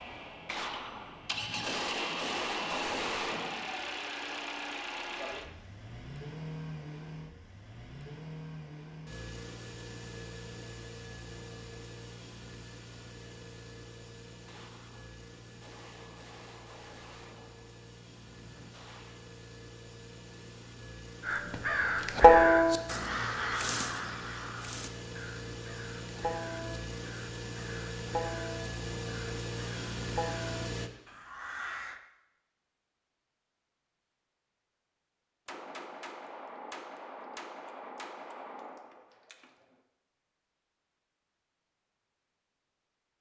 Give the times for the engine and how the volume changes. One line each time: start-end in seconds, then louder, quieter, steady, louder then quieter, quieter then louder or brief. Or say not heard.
0.0-30.9 quieter then louder.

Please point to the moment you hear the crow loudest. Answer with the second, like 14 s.
22 s.